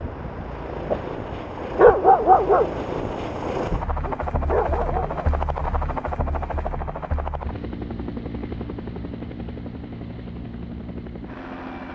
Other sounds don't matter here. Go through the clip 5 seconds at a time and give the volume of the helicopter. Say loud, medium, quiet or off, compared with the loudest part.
loud, loud, medium.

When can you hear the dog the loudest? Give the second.
2 s.